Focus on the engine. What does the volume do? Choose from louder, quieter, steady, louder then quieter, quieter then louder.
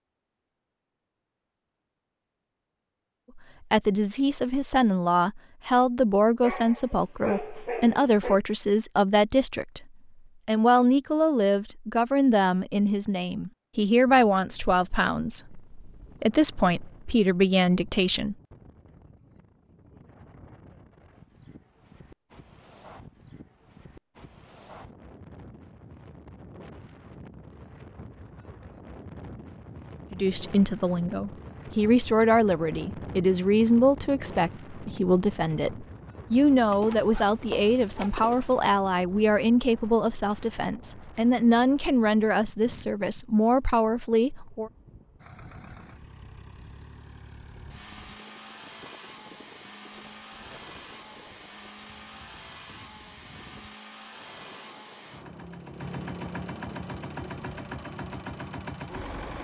louder.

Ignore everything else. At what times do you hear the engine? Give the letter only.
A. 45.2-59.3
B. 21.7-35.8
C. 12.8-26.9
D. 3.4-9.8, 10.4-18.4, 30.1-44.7
A.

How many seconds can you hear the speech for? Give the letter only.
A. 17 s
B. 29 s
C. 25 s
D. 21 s
B.